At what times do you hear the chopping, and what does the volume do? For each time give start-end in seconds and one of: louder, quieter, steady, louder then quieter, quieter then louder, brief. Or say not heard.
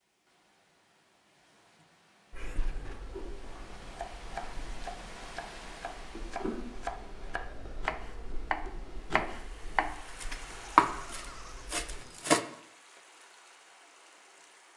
3.4-12.4 louder.